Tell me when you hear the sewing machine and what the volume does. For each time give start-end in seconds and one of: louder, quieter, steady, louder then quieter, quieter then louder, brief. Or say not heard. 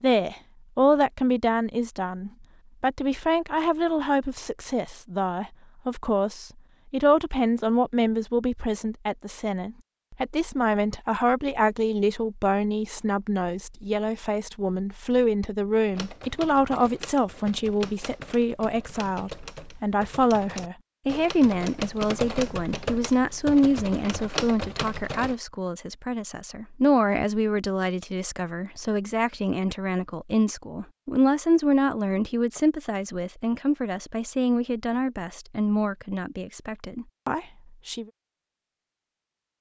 not heard.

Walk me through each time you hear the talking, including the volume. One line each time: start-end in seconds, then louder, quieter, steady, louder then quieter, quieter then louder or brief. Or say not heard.
0.0-38.0 steady.